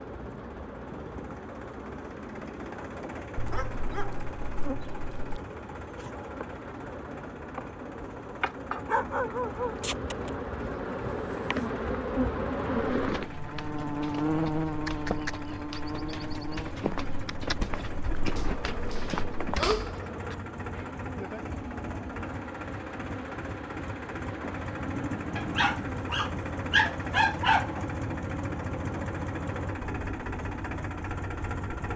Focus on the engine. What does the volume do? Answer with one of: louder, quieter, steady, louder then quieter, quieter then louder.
louder.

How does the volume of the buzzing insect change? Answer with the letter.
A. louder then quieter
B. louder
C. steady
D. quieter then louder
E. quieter
A.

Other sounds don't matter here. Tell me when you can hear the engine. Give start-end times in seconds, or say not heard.
0.0-31.9.